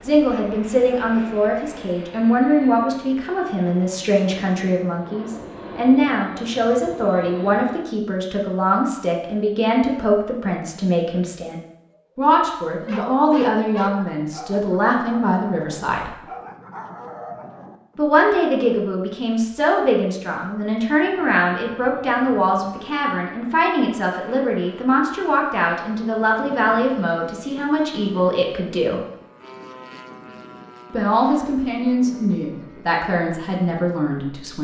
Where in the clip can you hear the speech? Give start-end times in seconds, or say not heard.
0.0-16.1, 17.9-29.0, 30.9-34.5.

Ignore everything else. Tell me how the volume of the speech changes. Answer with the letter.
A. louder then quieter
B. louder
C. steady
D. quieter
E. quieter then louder
C.